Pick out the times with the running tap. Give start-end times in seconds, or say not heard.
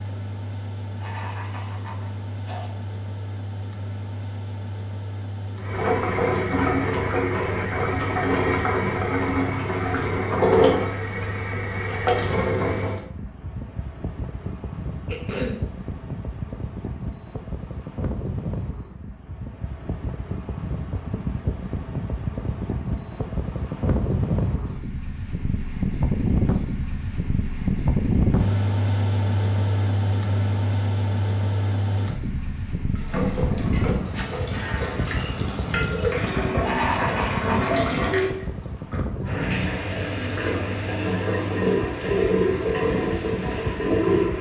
5.5-13.0, 33.0-44.3.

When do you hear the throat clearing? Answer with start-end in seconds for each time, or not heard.
1.0-2.7, 15.1-15.6, 36.6-37.8.